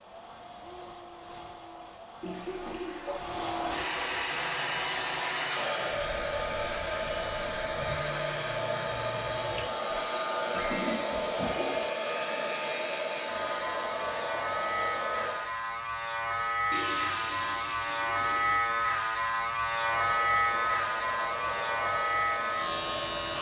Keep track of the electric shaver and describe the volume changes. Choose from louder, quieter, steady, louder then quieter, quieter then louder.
louder.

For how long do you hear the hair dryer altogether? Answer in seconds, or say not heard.
19 s.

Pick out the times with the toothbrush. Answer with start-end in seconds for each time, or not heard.
not heard.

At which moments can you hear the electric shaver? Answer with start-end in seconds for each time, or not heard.
4.3-23.3.